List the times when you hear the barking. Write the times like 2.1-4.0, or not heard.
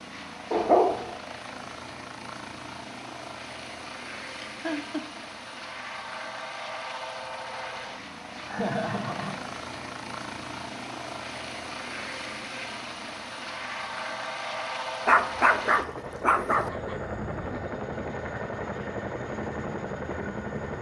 0.5-1.2, 15.1-16.7.